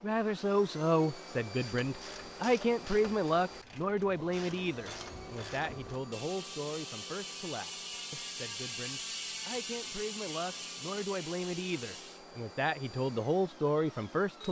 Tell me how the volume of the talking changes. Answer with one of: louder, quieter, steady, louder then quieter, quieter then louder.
quieter then louder.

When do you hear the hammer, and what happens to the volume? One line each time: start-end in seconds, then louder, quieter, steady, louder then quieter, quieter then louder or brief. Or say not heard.
not heard.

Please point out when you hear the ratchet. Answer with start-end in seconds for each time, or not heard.
1.6-12.2.